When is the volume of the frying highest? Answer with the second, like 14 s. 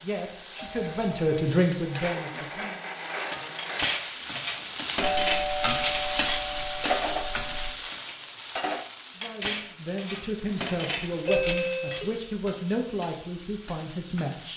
6 s.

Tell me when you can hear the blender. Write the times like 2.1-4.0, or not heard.
0.0-4.0.